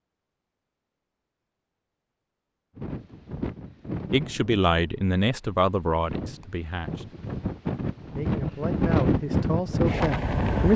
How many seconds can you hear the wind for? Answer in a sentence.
You can hear the wind for 8 seconds altogether.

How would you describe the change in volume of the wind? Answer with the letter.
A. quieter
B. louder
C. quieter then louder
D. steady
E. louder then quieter
C.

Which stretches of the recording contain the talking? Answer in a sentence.
You can hear the talking from 4.1 to 7.1 s and from 8.0 to 10.7 s.